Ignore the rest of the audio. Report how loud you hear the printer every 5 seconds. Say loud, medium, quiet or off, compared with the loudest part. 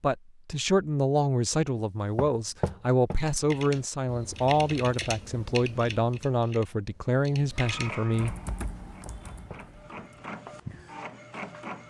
off, loud, loud.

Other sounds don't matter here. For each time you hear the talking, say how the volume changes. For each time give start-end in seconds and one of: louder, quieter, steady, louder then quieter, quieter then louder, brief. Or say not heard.
0.0-8.3 steady.